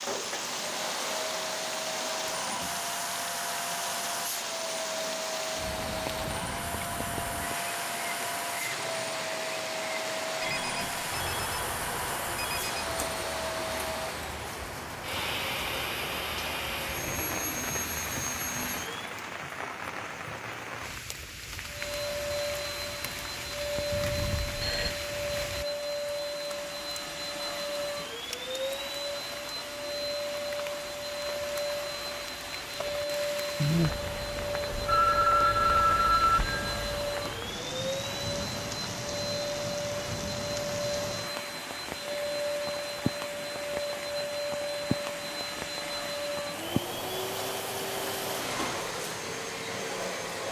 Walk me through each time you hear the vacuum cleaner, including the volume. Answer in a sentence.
You can hear the vacuum cleaner from 0.0 to 19.1 s, at a steady volume; and from 21.6 to 50.4 s, at a steady volume.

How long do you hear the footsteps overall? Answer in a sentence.
You can't hear the footsteps here.